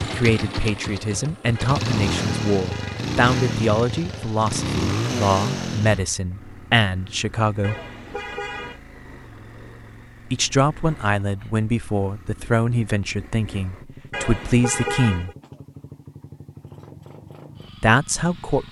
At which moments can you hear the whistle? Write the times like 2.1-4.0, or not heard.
not heard.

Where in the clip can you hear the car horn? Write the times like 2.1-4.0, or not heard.
1.6-3.5, 7.6-8.8, 14.1-15.3.